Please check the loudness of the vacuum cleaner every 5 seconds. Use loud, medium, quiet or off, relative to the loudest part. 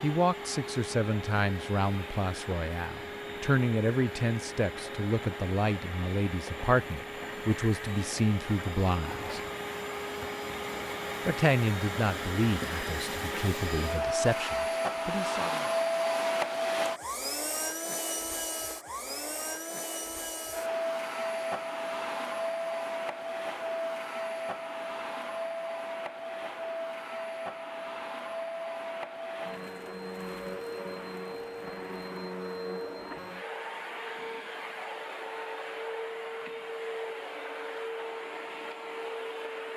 medium, medium, loud, loud, loud, medium, medium, medium.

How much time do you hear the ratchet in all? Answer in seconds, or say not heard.
not heard.